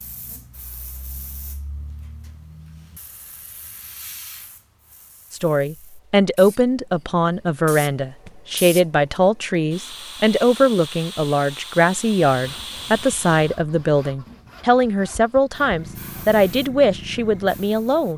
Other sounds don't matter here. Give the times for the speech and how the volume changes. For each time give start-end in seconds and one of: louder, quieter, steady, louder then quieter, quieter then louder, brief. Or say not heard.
5.3-18.1 steady.